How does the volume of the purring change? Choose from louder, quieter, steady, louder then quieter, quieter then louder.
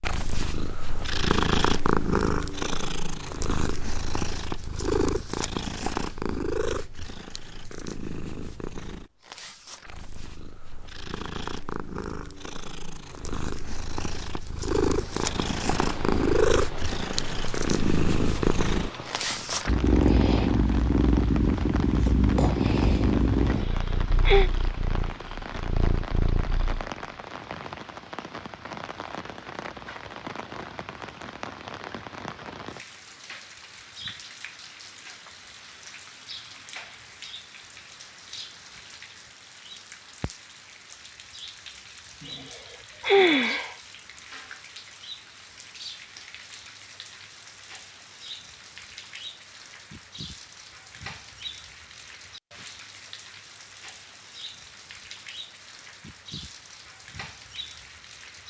quieter then louder.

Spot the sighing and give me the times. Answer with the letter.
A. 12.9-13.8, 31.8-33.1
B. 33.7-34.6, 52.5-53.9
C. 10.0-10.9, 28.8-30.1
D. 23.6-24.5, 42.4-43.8
D.